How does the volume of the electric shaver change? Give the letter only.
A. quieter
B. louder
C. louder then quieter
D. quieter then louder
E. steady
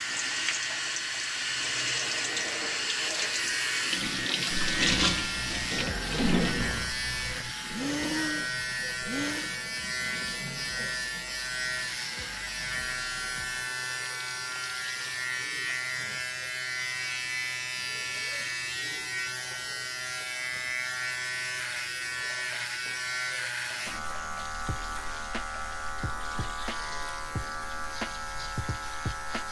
E.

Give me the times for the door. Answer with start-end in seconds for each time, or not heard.
not heard.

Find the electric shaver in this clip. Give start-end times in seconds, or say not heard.
0.0-29.4.